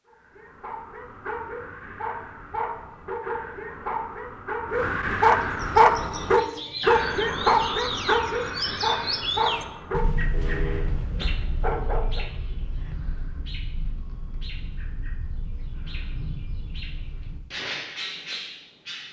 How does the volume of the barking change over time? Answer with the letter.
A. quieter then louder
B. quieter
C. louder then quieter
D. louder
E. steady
C.